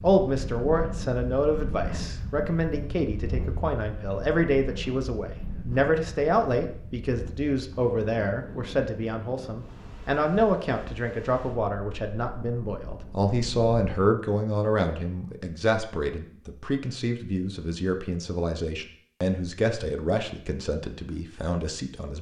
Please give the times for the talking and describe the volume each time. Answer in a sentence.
You can hear the talking from 0.0 to 22.1 s, at a steady volume.